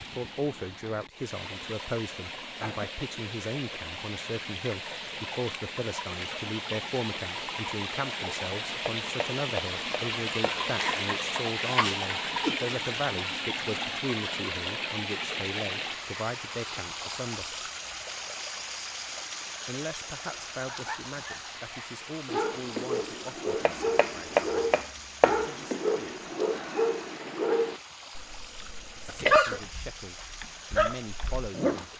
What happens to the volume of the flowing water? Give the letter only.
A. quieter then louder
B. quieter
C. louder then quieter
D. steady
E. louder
C.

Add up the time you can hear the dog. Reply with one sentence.
The dog can be heard for 11 seconds in total.